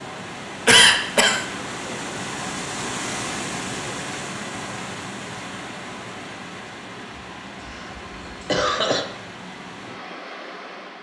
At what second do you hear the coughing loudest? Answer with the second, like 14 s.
1 s.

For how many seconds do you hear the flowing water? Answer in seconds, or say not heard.
11 s.